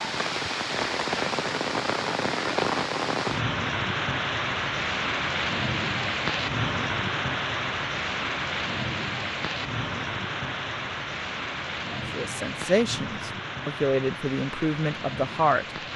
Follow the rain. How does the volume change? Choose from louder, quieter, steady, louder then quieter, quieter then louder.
quieter.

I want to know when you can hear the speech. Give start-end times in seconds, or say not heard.
12.1-15.7.